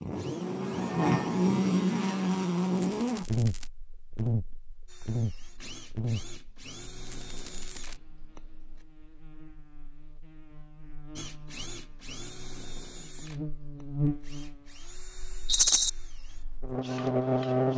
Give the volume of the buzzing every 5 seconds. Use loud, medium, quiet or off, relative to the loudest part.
loud, medium, medium, loud.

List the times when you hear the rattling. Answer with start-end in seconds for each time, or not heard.
2.8-3.7, 7.0-8.0, 15.4-15.9.